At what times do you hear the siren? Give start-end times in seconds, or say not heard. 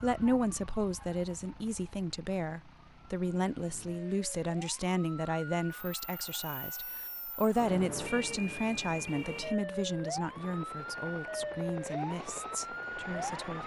0.0-13.6.